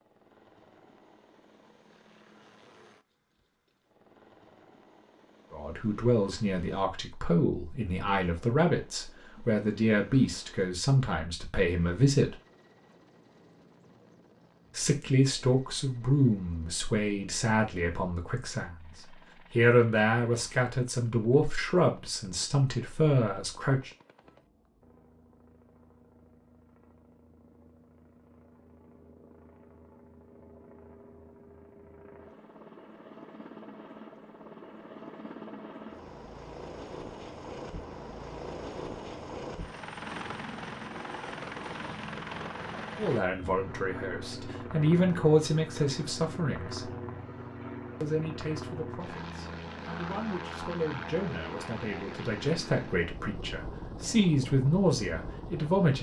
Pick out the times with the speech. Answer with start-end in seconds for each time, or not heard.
5.5-12.3, 14.8-18.9, 19.5-23.9, 43.0-46.9, 48.0-55.9.